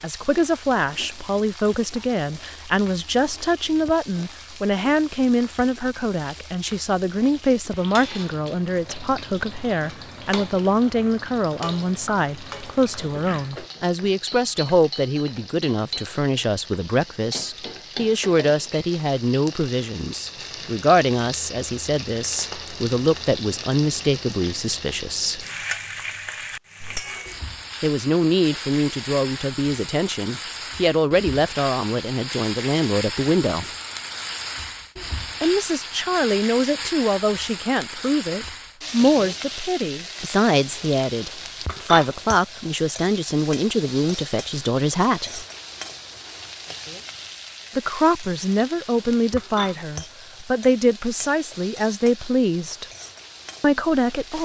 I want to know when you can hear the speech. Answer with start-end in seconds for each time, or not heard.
0.0-25.4, 27.8-33.6, 35.4-45.5, 47.8-52.9, 53.6-54.3.